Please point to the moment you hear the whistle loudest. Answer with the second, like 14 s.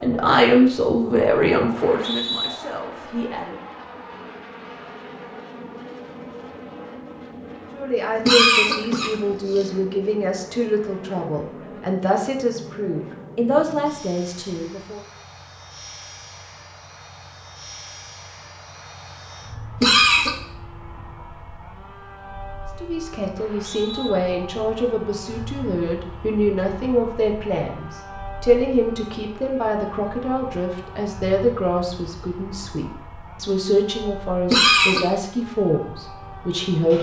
2 s.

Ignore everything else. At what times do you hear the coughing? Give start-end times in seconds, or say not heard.
8.2-9.7, 19.8-20.3, 34.5-35.0.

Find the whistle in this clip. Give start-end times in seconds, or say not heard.
1.8-2.5, 23.4-24.1.